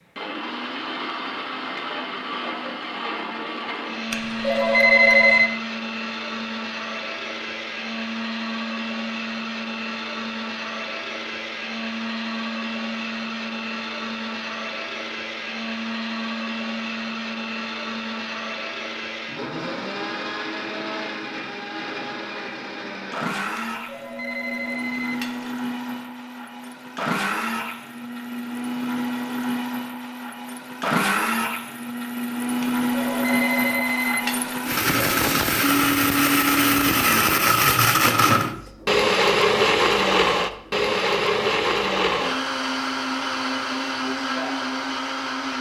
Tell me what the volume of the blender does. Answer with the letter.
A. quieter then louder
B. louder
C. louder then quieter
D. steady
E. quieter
B.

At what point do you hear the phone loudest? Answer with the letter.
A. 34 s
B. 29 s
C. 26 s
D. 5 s
D.